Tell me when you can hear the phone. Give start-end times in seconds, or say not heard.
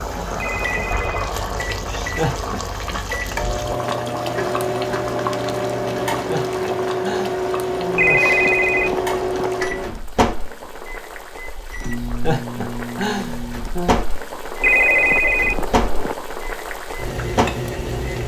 0.3-1.3, 8.0-9.5, 14.6-16.1.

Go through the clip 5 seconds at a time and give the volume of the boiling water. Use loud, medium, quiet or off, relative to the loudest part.
loud, loud, medium, loud.